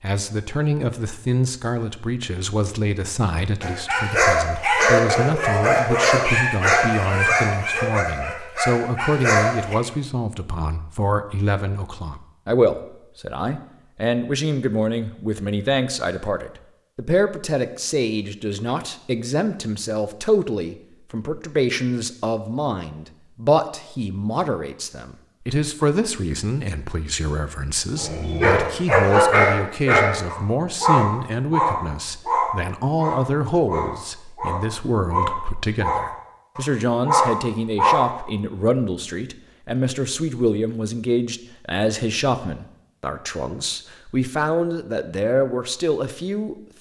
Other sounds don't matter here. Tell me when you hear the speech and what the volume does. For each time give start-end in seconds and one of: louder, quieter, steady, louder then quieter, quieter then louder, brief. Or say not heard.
0.0-46.5 steady.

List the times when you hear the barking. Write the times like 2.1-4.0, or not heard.
3.6-9.8, 27.9-38.1.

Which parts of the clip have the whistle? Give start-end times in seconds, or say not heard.
not heard.